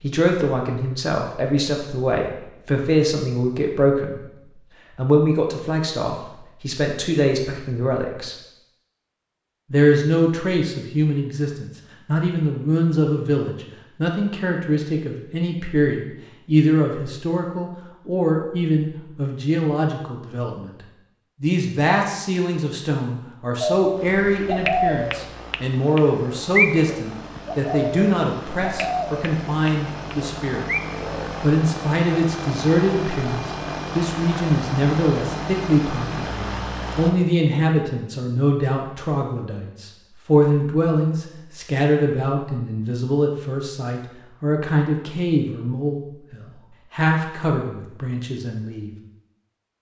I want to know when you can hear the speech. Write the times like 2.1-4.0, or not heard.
0.0-8.3, 9.7-20.7, 21.4-30.7, 31.4-48.9.